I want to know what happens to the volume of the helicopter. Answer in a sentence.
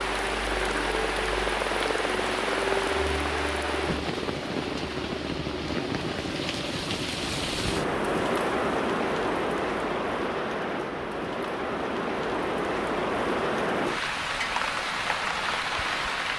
The loudness of the helicopter goes down.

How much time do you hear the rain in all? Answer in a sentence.
You can hear the rain for 16 seconds altogether.